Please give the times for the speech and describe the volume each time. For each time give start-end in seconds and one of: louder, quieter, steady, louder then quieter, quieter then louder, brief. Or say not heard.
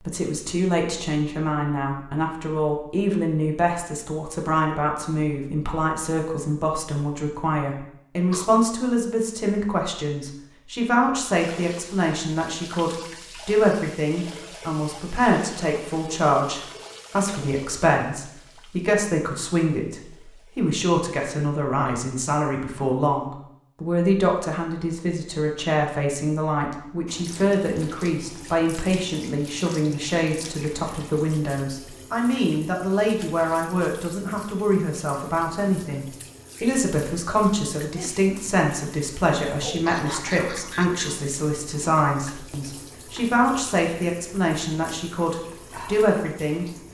0.1-46.6 steady.